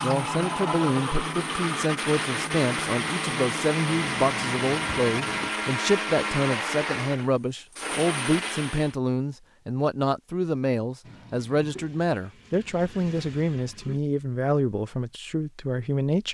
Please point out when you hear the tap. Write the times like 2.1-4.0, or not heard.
0.0-5.5, 11.0-14.0.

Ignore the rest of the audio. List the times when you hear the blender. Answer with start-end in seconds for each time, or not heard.
0.0-8.9.